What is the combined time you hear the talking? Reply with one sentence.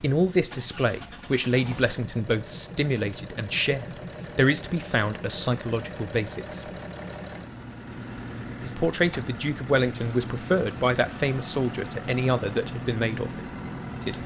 The talking can be heard for 12 seconds in total.